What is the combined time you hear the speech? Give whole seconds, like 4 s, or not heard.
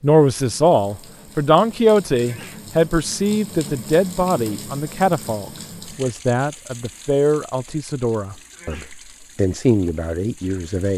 11 s.